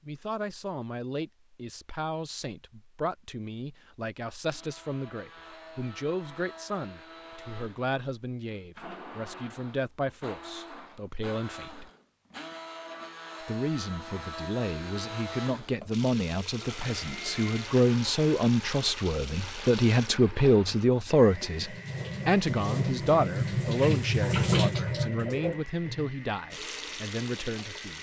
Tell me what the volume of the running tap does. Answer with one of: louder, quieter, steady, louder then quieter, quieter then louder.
louder then quieter.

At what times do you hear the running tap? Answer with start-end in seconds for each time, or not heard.
15.9-27.9.